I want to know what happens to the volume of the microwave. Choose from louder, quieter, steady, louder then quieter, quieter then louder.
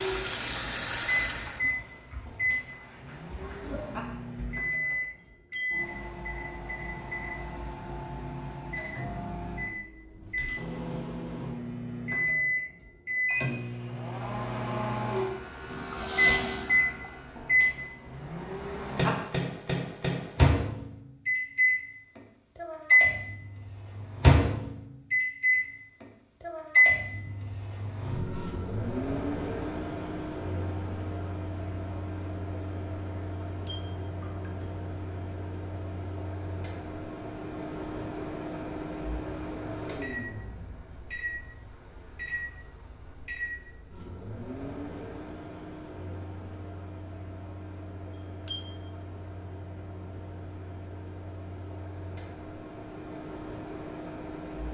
louder then quieter.